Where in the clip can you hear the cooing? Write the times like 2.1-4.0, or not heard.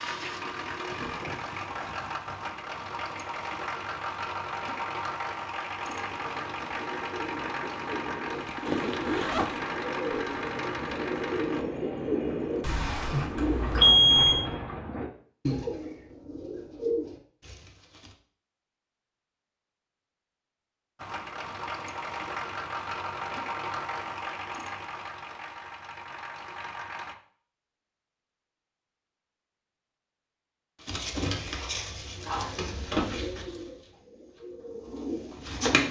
5.8-18.1, 30.8-35.8.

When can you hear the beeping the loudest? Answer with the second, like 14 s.
14 s.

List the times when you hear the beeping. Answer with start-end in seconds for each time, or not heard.
12.6-14.4.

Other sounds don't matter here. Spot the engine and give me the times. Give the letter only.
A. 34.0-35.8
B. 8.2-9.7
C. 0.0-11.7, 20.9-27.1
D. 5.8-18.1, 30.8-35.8
C.